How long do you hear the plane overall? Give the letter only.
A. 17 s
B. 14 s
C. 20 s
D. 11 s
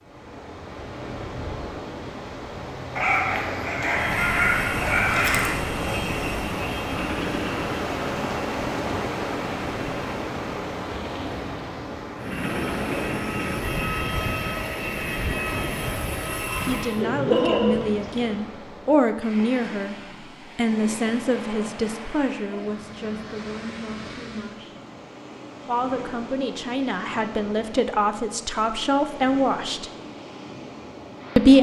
D.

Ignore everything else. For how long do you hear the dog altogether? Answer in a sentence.
The dog can be heard for 4 seconds in total.